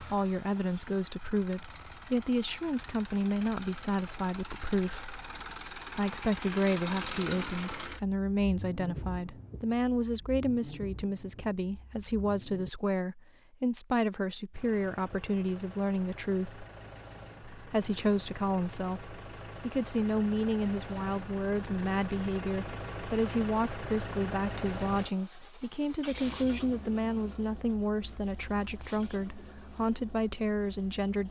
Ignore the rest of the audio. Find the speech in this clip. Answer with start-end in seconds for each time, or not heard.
0.0-16.6, 17.6-31.2.